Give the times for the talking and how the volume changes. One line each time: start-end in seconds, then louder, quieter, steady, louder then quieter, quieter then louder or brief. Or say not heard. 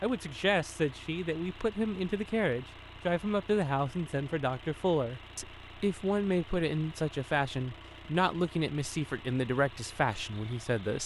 0.0-11.0 steady.